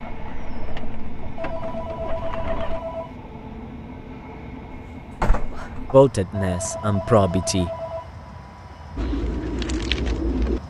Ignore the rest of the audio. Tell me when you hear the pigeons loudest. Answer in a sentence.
The loudest moment of the pigeons is at 10 seconds.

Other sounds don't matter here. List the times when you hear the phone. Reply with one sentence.
The phone can be heard from 1.4 to 3.2 s and from 6.3 to 8.2 s.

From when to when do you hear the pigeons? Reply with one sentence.
You can hear the pigeons from 0.0 to 2.8 s and from 8.9 to 10.6 s.